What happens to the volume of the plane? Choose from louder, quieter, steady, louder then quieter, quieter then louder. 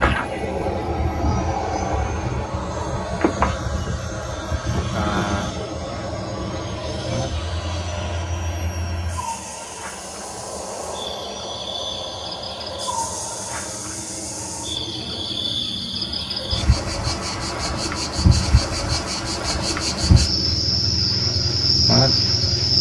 quieter.